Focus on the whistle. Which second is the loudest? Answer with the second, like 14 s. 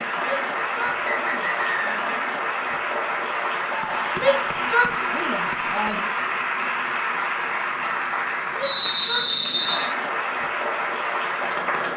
9 s.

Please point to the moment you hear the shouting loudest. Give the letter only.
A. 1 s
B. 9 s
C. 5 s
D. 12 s
C.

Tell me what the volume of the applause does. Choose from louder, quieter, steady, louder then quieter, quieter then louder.
steady.